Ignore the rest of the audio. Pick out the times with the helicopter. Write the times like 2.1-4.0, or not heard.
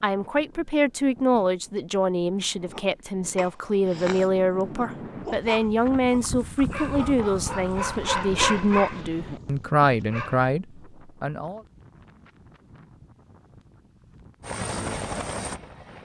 14.4-16.0.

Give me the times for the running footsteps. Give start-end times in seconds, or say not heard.
not heard.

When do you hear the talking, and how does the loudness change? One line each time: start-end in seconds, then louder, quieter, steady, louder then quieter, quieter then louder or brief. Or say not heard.
0.0-11.6 steady.